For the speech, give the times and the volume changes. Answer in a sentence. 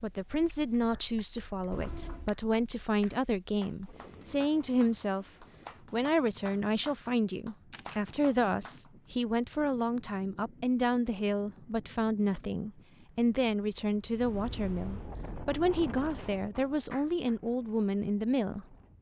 You can hear the speech from 0.0 to 18.8 s, at a steady volume.